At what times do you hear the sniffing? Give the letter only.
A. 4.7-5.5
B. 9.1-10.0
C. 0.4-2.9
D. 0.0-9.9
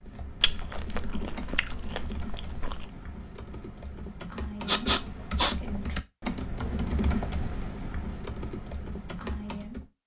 A.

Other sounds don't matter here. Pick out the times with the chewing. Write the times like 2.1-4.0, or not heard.
0.4-2.9.